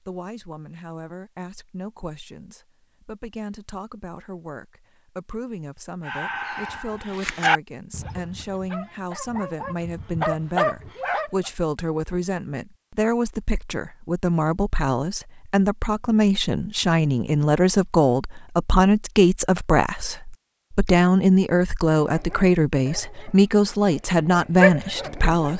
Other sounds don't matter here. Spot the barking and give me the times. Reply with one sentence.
You can hear the barking from 6.0 to 11.5 s and from 22.0 to 25.5 s.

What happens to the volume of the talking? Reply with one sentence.
The loudness of the talking goes up.